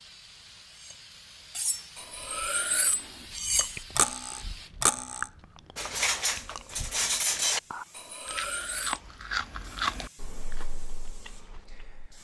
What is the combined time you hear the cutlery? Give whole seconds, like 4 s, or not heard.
8 s.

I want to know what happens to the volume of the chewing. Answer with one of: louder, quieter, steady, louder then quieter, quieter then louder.
louder then quieter.